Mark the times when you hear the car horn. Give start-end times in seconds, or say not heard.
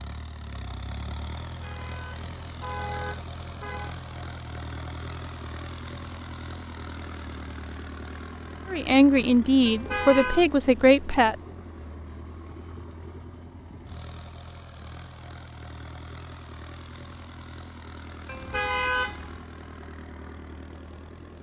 1.5-4.0, 9.7-10.4, 18.2-19.4.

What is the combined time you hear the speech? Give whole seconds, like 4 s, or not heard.
3 s.